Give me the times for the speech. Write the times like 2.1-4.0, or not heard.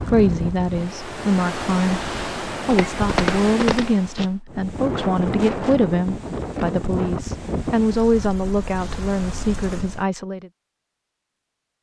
0.0-10.5.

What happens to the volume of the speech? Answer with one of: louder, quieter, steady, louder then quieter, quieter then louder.
steady.